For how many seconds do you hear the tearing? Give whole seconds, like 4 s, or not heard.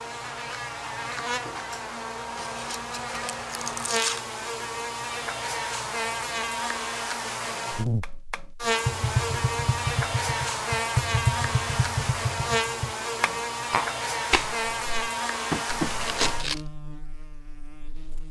3 s.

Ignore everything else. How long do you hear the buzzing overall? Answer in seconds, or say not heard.
18 s.